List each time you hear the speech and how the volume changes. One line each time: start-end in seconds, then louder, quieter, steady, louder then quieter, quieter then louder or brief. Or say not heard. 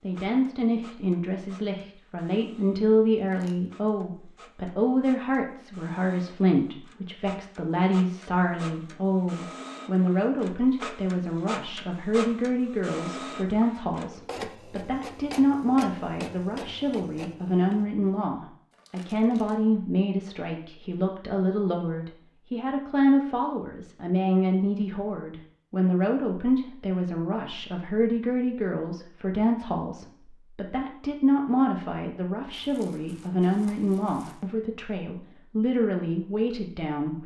0.0-37.2 steady.